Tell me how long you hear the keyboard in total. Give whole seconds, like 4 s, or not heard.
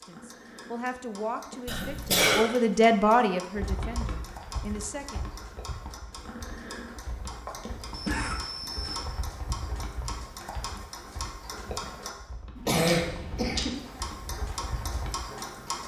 12 s.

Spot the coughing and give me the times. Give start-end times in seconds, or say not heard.
1.6-2.5, 7.9-9.1, 12.7-13.8.